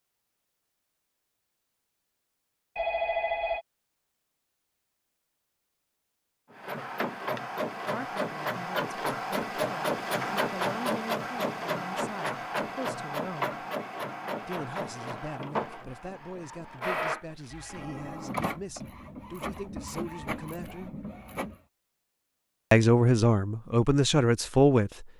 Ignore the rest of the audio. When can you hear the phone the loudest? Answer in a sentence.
The loudest moment of the phone is at 3 seconds.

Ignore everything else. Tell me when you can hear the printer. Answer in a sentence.
You can hear the printer from 6.5 to 21.6 s.